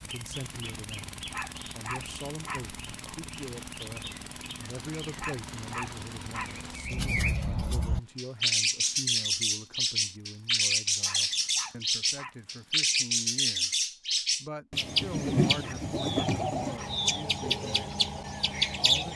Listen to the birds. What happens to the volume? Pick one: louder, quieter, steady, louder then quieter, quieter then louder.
louder.